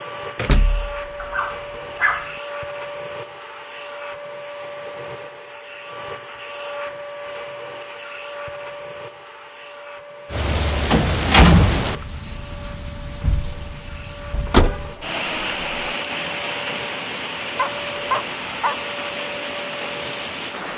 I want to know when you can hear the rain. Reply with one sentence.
You can hear the rain from 10.2 to 20.7 s.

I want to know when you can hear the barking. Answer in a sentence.
The barking can be heard from 1.2 to 2.4 s and from 17.6 to 18.9 s.